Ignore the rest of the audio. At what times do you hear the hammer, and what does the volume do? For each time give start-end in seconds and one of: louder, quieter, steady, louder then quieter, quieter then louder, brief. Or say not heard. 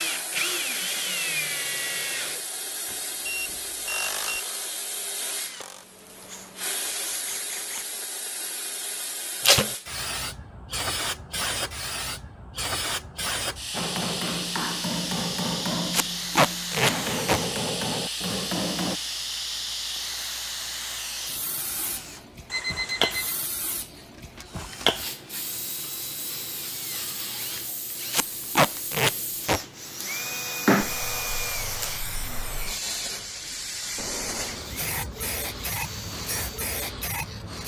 13.7-19.0 quieter then louder.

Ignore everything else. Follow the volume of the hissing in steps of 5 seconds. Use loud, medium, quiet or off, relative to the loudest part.
medium, medium, loud, loud, loud, medium, loud, loud.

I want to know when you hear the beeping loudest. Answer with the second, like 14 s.
23 s.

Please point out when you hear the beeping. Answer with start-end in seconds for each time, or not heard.
3.2-4.4, 22.5-23.4, 34.0-34.6.